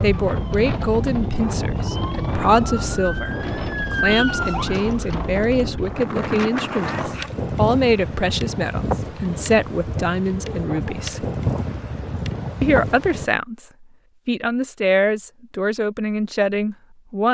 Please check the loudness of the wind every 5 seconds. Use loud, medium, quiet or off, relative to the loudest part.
loud, loud, loud, off.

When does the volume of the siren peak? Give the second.
4 s.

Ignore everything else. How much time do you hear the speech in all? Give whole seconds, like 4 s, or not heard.
15 s.